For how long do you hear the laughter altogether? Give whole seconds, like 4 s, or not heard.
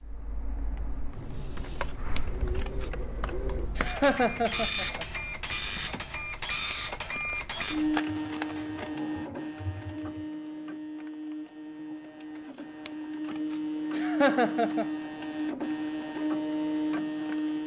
2 s.